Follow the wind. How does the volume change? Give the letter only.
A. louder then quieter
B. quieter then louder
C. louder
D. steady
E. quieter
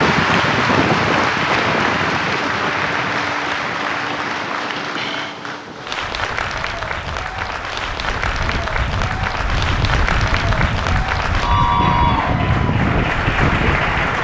B.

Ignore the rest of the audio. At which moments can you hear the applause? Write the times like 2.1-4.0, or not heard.
0.0-14.1.